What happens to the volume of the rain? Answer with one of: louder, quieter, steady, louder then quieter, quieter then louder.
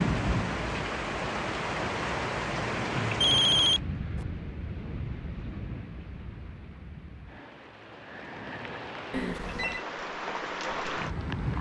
quieter then louder.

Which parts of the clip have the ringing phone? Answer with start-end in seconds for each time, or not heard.
3.2-4.2, 9.1-9.8.